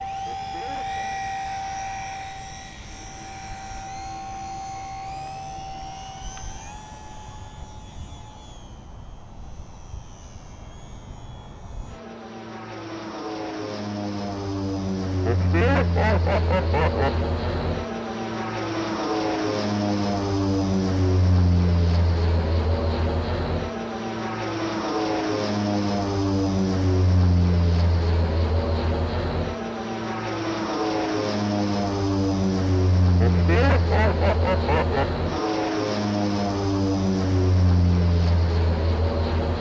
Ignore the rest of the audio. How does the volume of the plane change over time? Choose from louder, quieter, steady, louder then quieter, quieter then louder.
louder.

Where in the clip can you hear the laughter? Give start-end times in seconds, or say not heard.
0.2-1.2, 15.2-17.1, 33.2-35.1.